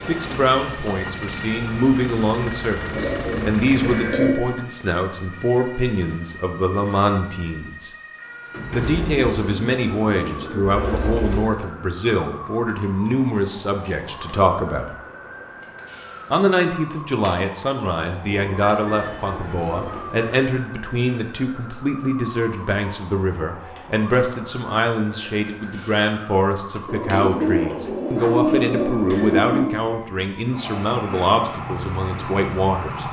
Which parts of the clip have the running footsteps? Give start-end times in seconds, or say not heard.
not heard.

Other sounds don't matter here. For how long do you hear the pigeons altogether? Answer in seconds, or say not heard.
9 s.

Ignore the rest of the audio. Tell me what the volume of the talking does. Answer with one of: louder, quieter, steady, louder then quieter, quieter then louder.
steady.